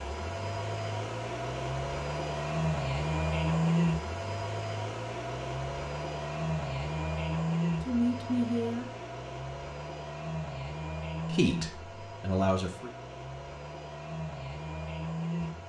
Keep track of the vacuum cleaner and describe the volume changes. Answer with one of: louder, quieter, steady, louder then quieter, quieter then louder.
quieter.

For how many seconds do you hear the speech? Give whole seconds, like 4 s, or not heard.
3 s.